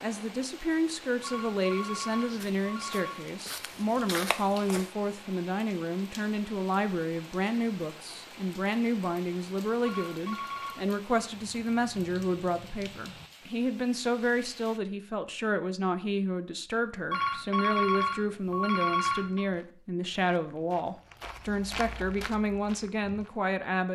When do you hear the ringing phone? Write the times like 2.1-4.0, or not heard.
1.2-3.2, 9.8-10.8, 17.1-19.4.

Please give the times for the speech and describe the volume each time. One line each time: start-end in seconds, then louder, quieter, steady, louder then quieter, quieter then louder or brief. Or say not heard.
0.0-23.8 steady.